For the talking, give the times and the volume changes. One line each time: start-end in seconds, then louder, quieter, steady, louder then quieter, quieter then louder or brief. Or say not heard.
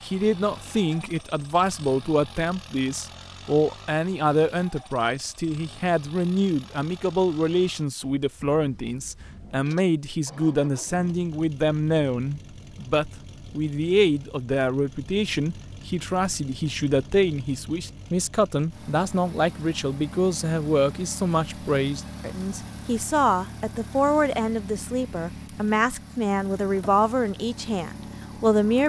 0.0-28.8 steady.